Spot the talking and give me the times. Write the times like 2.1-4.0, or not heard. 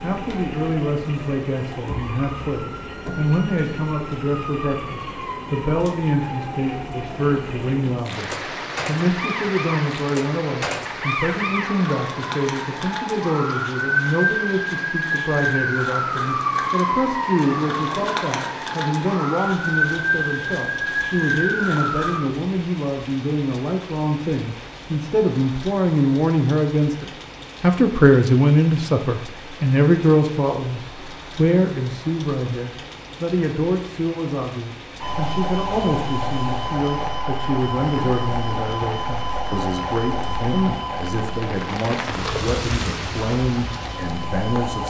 0.0-44.8.